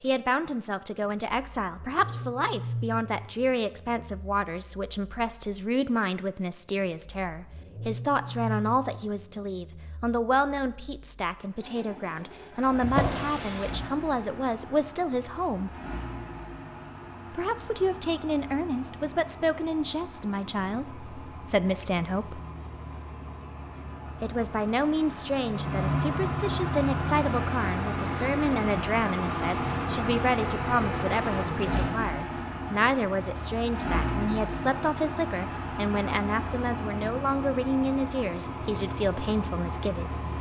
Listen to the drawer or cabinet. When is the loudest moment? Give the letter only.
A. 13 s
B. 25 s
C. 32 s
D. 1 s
A.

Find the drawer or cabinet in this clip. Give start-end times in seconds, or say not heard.
12.8-13.8, 31.4-32.0.